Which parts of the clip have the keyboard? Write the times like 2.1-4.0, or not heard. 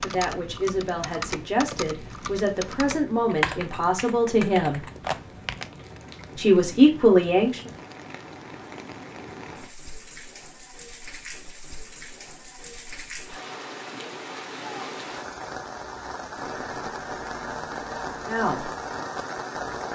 0.0-5.8.